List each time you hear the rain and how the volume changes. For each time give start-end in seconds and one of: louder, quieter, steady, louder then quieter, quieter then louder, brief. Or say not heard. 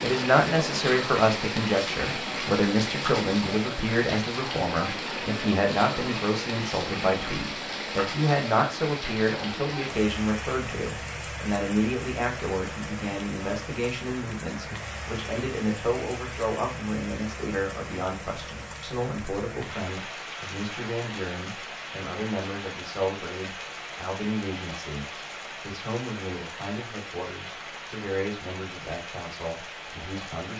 0.0-30.5 quieter.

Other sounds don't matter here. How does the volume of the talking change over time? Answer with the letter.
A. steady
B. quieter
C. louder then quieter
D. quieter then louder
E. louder
B.